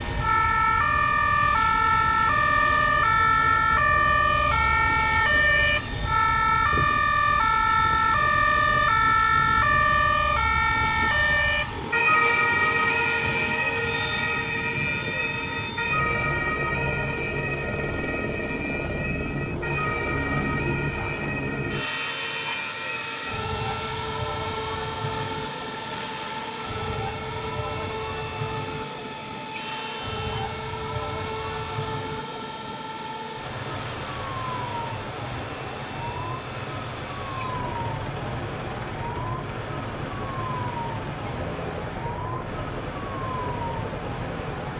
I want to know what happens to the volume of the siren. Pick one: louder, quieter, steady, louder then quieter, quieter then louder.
quieter.